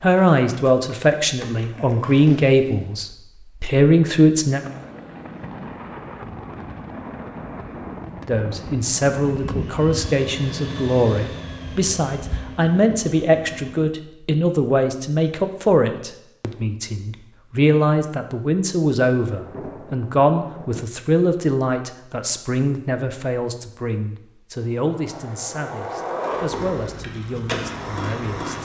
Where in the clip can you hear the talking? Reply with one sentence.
The talking can be heard from 0.0 to 4.6 s and from 8.2 to 28.5 s.